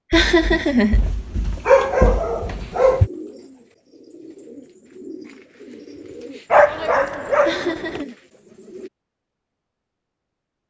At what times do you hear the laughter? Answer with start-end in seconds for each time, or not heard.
0.1-1.0, 7.4-8.2.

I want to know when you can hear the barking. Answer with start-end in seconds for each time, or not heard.
0.1-3.1, 6.5-8.0.